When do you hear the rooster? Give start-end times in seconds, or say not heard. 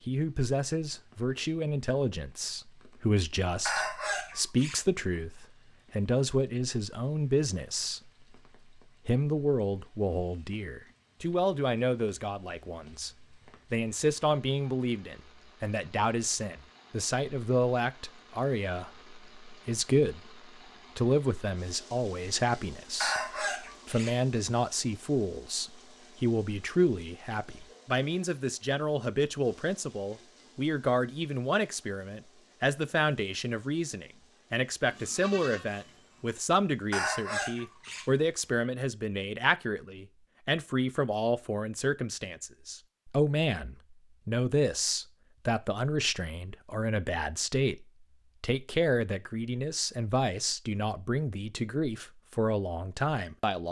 3.6-4.8, 23.0-24.1, 36.9-38.1.